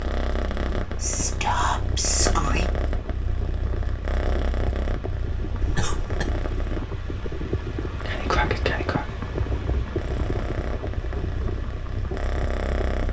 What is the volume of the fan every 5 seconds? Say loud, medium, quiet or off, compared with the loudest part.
medium, loud, loud.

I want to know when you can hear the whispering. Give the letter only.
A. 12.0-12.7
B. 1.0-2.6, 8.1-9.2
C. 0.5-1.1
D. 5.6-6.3
B.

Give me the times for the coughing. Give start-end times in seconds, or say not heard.
5.6-6.3.